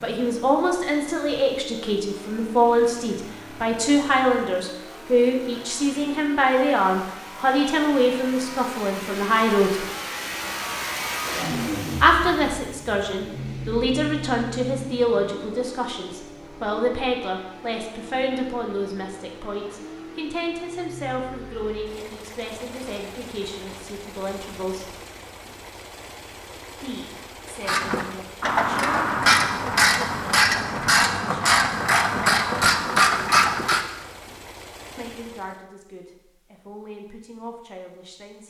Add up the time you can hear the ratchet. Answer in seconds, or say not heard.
6 s.